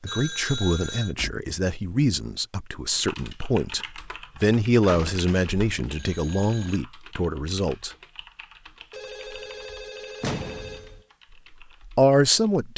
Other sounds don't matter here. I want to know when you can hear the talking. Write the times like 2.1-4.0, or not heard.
0.0-8.0, 11.9-12.7.